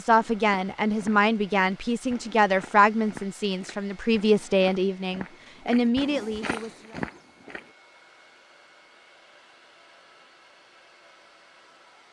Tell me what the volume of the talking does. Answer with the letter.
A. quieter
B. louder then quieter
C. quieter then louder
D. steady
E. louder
D.